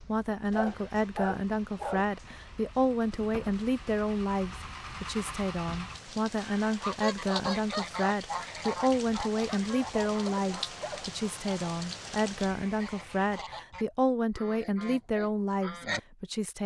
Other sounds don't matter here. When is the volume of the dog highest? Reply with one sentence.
The loudest moment of the dog is at 1 second.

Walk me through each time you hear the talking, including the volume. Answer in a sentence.
You can hear the talking from 0.0 to 16.6 s, at a steady volume.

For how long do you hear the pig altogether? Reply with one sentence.
The pig can't be heard in this clip.